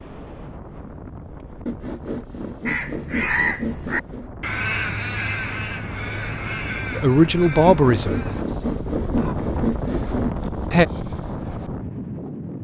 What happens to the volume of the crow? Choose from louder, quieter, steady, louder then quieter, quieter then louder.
quieter.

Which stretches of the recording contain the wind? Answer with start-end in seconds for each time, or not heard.
0.0-12.5.